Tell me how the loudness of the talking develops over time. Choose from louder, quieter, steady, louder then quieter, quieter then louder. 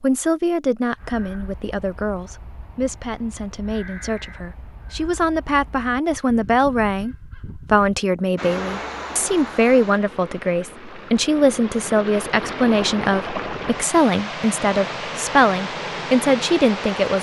louder.